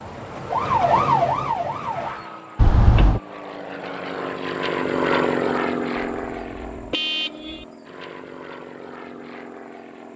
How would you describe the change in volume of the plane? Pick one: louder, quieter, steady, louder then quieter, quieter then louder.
louder then quieter.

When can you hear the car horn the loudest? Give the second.
3 s.